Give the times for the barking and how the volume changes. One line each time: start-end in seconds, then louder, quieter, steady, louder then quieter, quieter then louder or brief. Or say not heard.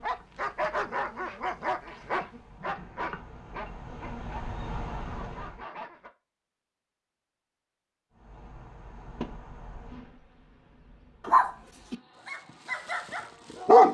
0.0-6.1 quieter
11.2-13.8 brief.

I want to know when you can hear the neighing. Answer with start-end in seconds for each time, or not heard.
not heard.